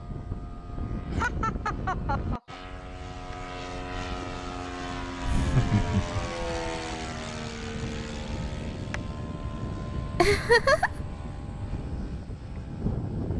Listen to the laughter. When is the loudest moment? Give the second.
11 s.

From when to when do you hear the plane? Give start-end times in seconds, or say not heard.
0.0-13.3.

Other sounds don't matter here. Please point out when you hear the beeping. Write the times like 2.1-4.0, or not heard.
not heard.